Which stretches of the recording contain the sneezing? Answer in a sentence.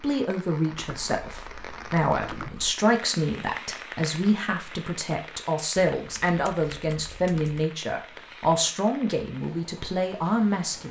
The sneezing can't be heard in this clip.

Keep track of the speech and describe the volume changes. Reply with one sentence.
The loudness of the speech stays about the same.